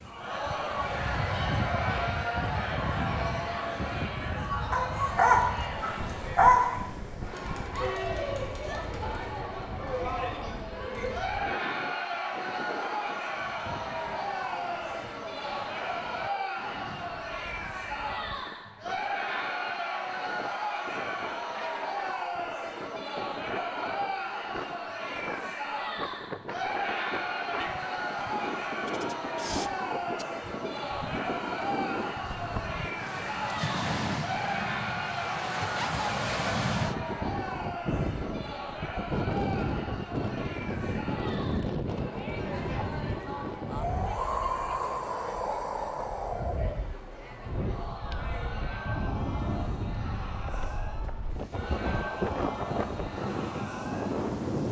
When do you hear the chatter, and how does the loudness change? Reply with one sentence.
The chatter can be heard from 0.0 to 54.4 s, getting quieter.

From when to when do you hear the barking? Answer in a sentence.
You can hear the barking from 4.7 to 6.8 s.